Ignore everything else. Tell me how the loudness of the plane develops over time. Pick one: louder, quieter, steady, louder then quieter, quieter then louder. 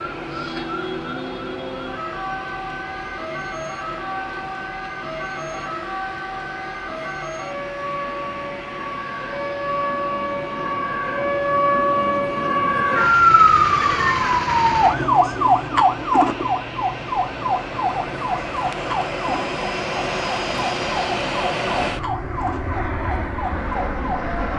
louder.